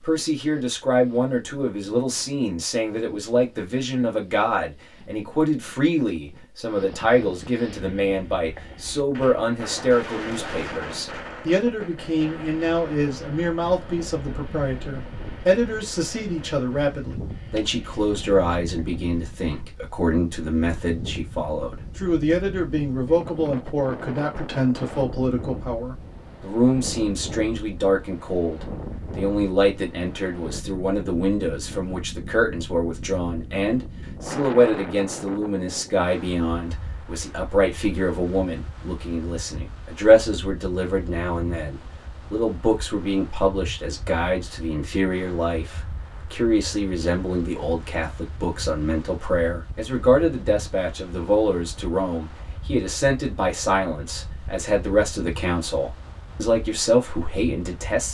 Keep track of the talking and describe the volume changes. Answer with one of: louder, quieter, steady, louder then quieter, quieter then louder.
steady.